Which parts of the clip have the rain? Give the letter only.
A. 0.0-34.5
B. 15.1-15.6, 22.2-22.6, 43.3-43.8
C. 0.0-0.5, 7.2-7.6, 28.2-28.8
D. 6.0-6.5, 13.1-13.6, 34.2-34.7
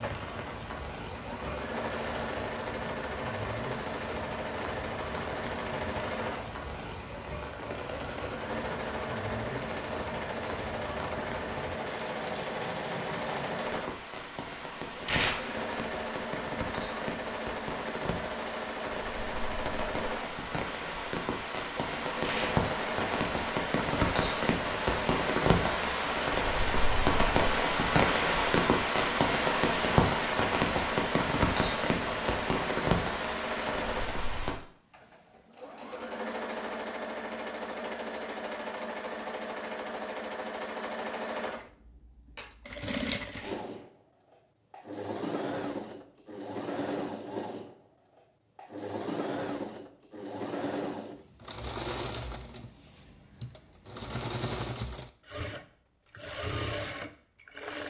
A.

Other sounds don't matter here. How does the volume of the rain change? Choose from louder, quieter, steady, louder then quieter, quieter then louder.
louder.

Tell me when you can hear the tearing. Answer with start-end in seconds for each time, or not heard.
15.1-15.6, 22.2-22.6, 43.3-43.8.